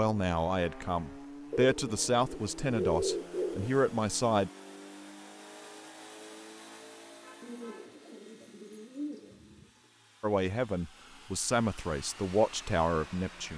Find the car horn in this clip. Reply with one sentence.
You can hear the car horn from 7.2 to 8.0 s.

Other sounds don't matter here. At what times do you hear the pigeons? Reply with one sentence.
The pigeons can be heard from 1.5 to 3.8 s and from 7.4 to 9.7 s.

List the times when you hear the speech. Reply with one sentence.
You can hear the speech from 0.0 to 4.5 s and from 10.2 to 13.5 s.